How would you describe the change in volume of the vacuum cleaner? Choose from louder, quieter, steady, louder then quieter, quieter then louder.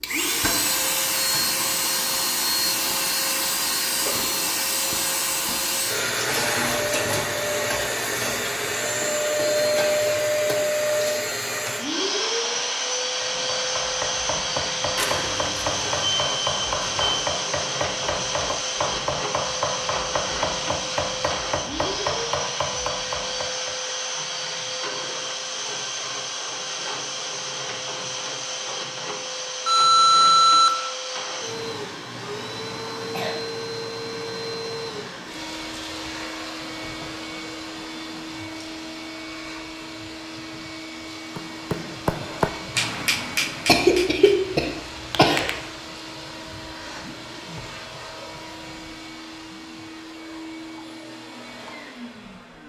quieter.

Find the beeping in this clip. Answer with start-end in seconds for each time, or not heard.
14.9-17.2, 29.6-30.7.